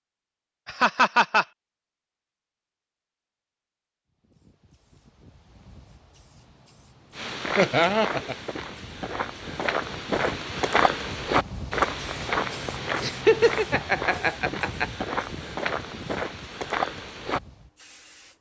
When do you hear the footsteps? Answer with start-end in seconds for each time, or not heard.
7.2-17.4.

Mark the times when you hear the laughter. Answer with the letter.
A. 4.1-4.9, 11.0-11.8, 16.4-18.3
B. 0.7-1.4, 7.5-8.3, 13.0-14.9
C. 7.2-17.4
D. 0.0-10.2
B.